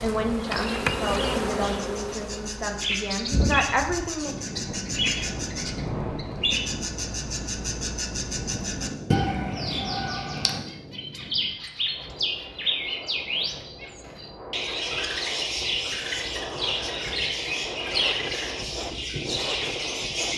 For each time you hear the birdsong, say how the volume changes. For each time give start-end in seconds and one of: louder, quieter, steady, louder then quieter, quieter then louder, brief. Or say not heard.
0.0-20.3 steady.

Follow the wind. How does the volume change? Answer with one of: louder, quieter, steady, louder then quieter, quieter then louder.
quieter then louder.